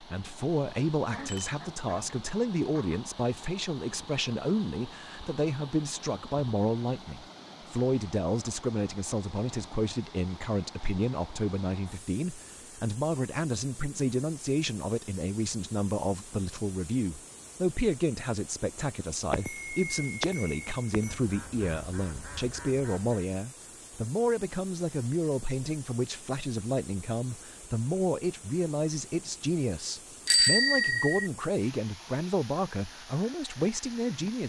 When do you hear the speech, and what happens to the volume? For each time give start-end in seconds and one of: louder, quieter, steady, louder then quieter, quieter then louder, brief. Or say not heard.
0.0-34.4 steady.